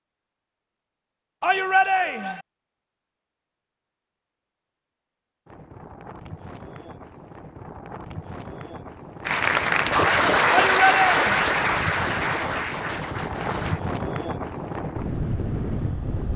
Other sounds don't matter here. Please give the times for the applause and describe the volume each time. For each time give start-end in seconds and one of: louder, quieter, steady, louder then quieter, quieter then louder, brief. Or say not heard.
9.2-13.8 quieter.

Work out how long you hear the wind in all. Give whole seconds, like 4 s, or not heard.
11 s.